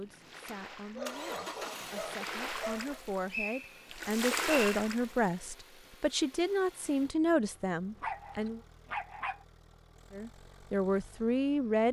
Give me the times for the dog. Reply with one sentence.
You can hear the dog from 0.9 to 3.0 s and from 8.0 to 9.4 s.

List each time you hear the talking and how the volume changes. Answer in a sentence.
You can hear the talking from 0.0 to 8.6 s, getting louder; and briefly from 10.1 to 11.8 s.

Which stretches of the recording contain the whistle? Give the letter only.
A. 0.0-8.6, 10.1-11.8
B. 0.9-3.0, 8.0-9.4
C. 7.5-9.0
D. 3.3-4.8
D.